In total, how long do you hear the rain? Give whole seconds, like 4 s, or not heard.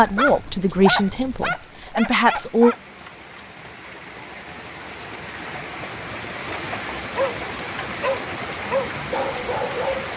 10 s.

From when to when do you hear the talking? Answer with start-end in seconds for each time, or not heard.
0.0-2.8.